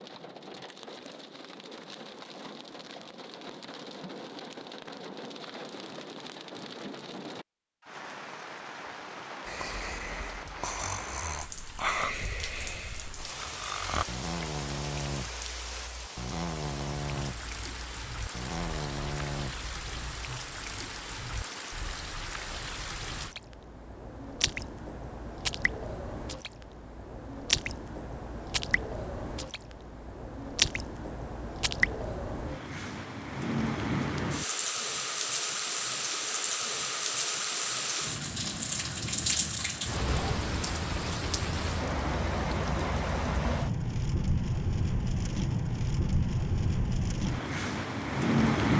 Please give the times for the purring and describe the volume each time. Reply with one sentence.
The purring can't be heard in this clip.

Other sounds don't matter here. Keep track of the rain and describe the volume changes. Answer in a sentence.
The loudness of the rain goes up.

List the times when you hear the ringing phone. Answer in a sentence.
You can't hear the ringing phone here.